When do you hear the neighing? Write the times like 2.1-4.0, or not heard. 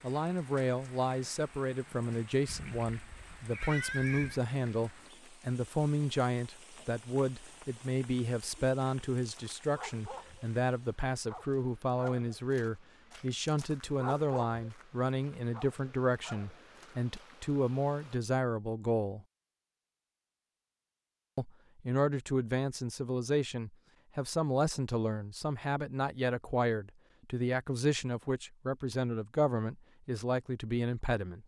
2.5-4.4.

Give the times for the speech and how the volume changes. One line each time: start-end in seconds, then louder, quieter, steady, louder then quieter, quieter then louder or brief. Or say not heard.
0.0-19.2 steady
21.4-31.4 steady.